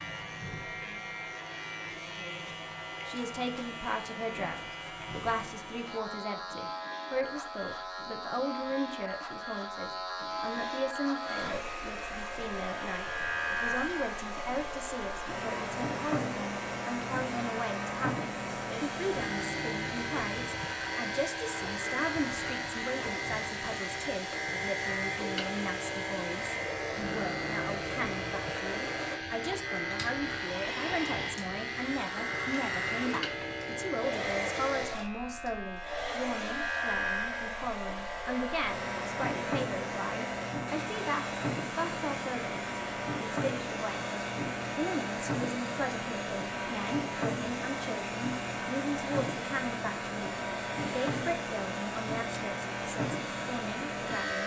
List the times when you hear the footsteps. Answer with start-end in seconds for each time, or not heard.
not heard.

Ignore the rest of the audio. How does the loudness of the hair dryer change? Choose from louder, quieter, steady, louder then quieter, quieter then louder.
steady.